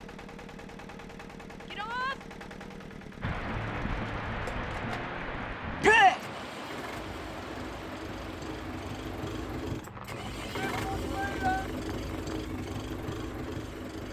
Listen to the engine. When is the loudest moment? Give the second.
11 s.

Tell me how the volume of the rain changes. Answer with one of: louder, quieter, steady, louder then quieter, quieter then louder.
quieter.